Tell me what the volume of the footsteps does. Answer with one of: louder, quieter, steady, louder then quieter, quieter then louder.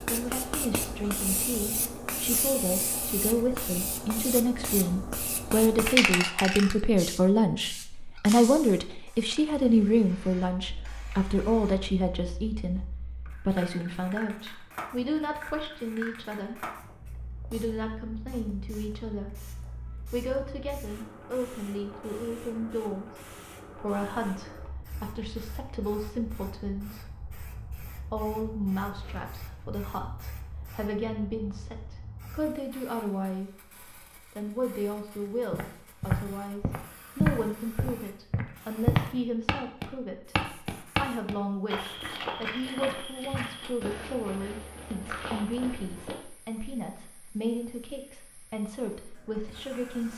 quieter.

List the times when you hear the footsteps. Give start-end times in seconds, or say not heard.
35.5-46.2.